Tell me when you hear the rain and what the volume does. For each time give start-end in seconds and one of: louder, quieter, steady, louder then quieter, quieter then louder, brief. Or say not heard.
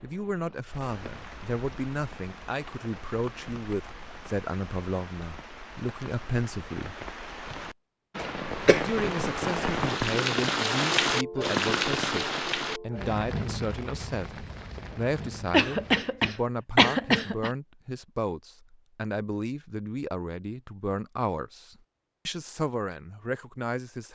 0.0-16.1 louder then quieter.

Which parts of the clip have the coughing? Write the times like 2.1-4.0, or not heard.
8.2-8.8, 15.5-17.5.